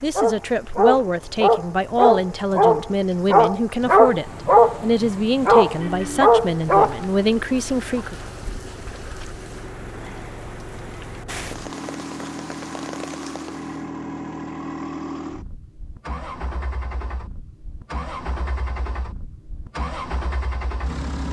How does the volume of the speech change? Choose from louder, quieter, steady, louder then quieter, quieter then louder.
steady.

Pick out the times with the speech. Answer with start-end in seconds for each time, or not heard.
0.0-8.2.